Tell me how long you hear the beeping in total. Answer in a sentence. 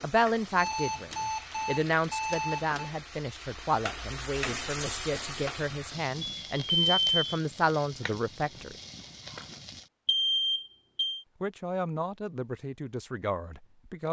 The beeping can be heard for 5 seconds in total.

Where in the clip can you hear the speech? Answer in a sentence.
The speech can be heard from 0.0 to 8.8 s and from 11.4 to 14.0 s.